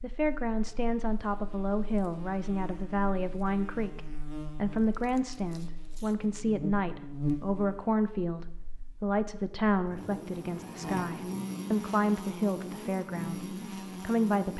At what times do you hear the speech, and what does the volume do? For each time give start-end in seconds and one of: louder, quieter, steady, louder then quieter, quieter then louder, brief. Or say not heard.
0.0-14.5 steady.